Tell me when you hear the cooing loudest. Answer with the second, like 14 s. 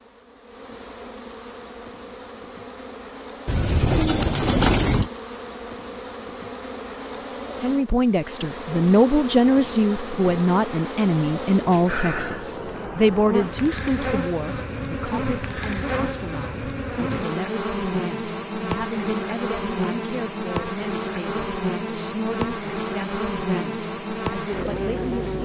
5 s.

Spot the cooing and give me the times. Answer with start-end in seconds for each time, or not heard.
3.5-5.1.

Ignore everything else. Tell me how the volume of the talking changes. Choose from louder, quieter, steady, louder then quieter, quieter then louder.
quieter.